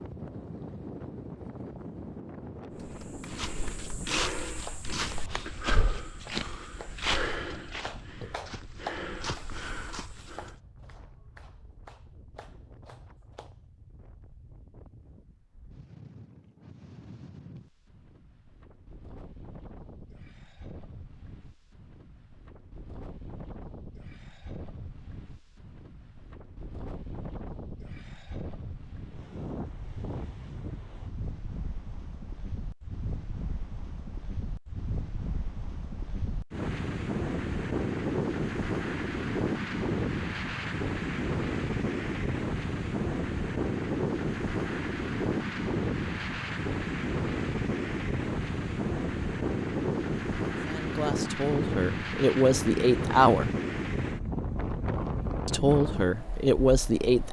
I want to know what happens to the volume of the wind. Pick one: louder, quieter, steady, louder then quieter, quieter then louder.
quieter then louder.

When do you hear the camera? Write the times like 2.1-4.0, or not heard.
not heard.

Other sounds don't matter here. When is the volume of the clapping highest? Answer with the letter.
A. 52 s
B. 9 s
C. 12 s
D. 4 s
B.